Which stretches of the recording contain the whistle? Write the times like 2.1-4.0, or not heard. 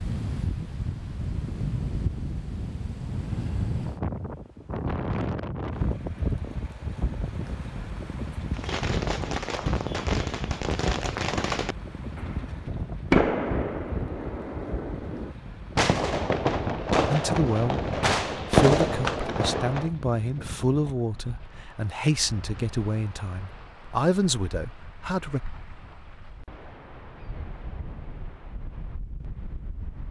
not heard.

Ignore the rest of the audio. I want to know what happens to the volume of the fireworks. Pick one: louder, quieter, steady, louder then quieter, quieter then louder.
louder.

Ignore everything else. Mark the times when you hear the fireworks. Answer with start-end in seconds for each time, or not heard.
8.5-19.9.